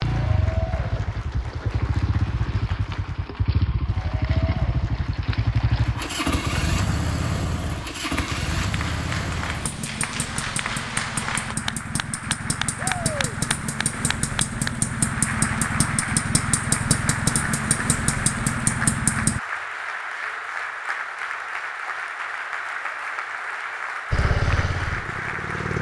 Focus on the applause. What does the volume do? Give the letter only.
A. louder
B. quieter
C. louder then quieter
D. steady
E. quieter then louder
A.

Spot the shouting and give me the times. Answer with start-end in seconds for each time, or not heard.
12.8-13.3.